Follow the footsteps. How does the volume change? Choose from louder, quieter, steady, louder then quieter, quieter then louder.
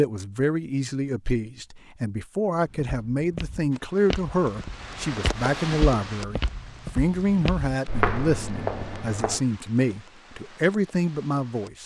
louder.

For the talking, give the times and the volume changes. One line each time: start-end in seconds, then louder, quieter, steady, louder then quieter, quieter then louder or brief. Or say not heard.
0.0-11.8 steady.